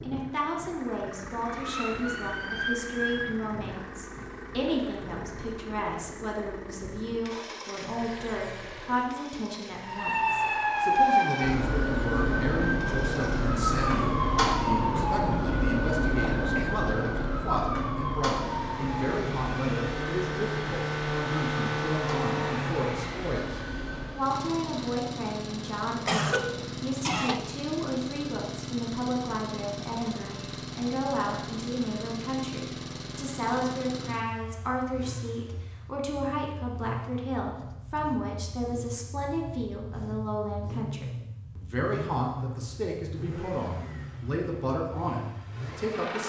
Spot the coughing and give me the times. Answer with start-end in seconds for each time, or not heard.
16.4-17.2, 26.1-27.4.